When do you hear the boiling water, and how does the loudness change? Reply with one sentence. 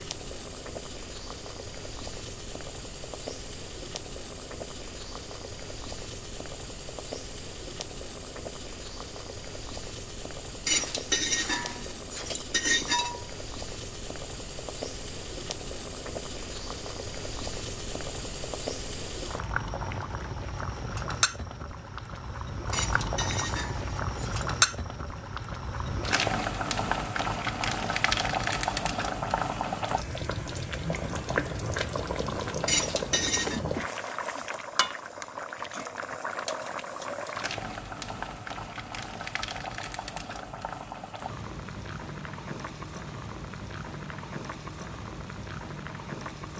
The boiling water can be heard from 0.0 to 46.5 s, getting louder then quieter.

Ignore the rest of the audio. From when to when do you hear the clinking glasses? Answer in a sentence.
You can hear the clinking glasses from 10.7 to 13.2 s, from 22.7 to 24.5 s and from 32.6 to 33.6 s.